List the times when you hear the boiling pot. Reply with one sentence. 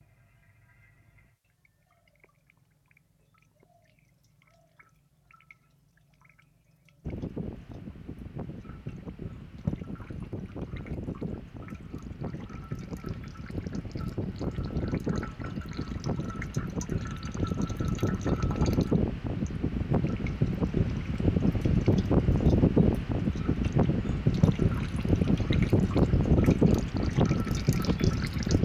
You can't hear the boiling pot here.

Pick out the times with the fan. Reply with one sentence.
You can hear the fan from 7.0 to 28.6 s.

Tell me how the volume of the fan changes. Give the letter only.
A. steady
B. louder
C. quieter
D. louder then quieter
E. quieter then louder
B.